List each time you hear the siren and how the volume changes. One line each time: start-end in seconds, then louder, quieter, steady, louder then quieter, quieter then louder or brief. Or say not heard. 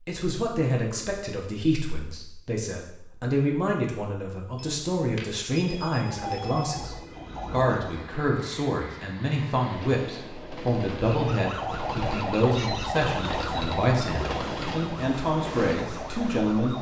6.2-8.0 brief
11.1-16.7 quieter.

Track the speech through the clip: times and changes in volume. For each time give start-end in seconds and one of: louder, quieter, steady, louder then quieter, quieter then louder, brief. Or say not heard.
0.1-16.7 steady.